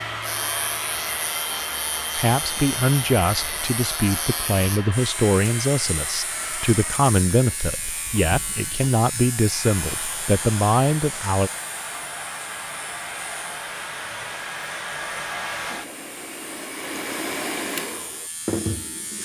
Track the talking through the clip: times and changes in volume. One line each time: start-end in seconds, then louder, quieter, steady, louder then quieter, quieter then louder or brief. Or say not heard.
2.1-11.5 steady.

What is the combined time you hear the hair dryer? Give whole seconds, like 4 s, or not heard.
19 s.